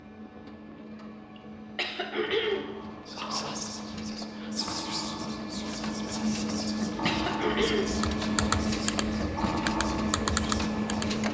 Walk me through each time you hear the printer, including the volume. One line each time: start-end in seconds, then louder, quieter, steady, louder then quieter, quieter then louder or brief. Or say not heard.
0.0-11.2 louder.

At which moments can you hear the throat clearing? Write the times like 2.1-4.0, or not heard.
1.8-3.2, 7.0-8.1.